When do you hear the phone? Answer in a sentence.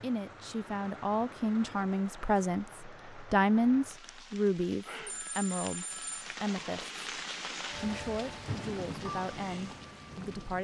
You can hear the phone from 5.0 to 6.2 s.